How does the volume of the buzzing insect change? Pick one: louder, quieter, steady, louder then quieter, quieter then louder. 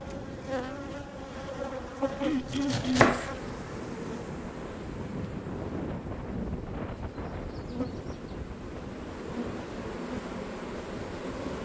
quieter then louder.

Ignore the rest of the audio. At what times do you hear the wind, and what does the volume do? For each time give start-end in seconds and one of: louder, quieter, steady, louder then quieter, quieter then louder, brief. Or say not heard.
0.0-11.6 louder then quieter.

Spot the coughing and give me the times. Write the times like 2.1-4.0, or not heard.
2.2-3.1.